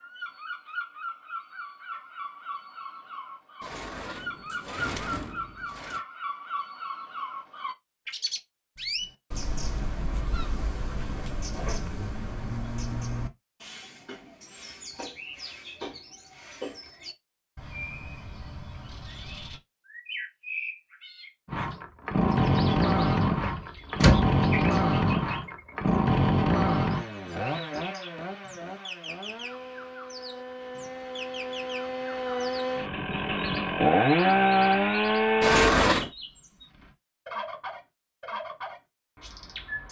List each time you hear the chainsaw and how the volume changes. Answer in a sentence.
The chainsaw can be heard from 21.5 to 35.8 s, getting quieter then louder.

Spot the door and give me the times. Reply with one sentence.
You can hear the door from 3.6 to 6.0 s, from 23.4 to 24.4 s and from 35.4 to 36.1 s.